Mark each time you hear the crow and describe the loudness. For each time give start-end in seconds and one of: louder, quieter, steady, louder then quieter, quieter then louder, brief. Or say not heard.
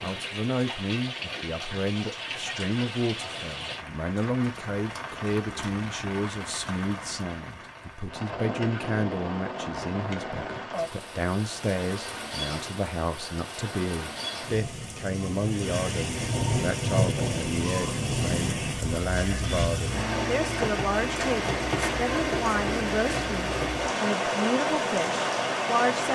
not heard.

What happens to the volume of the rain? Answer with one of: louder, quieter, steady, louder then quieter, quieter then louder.
louder.